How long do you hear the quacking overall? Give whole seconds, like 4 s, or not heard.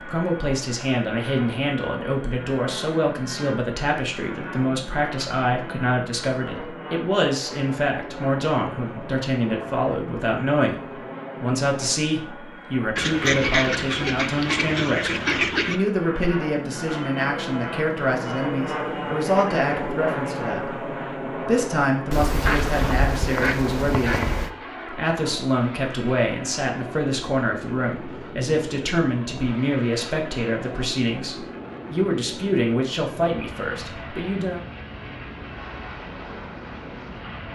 5 s.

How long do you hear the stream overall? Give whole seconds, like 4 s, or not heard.
not heard.